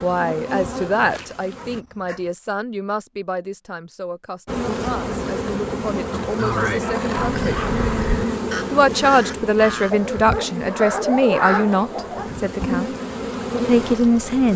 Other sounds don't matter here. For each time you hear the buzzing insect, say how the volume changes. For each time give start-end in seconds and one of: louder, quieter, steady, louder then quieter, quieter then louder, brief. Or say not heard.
0.0-1.9 brief
4.5-14.5 quieter then louder.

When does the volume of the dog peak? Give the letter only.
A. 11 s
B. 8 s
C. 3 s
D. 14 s
A.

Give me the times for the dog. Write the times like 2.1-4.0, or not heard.
1.6-2.3, 6.6-7.8, 9.9-12.3.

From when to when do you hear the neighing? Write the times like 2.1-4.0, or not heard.
not heard.